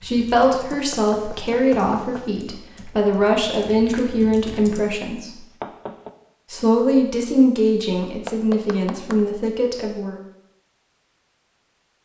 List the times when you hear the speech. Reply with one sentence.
You can hear the speech from 0.0 to 5.5 s and from 6.5 to 10.2 s.